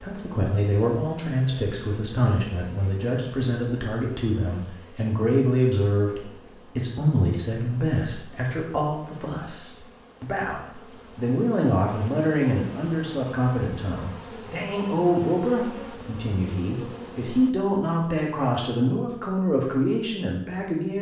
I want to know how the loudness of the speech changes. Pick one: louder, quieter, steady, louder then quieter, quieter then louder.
steady.